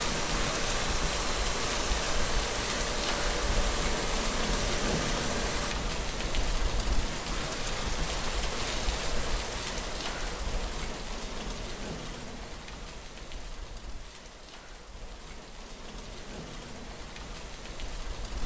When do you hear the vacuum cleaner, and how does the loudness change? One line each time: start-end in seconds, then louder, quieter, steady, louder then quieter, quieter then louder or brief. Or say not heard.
0.0-5.8 steady.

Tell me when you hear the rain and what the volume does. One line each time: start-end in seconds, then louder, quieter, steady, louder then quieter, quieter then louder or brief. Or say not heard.
0.0-18.4 quieter.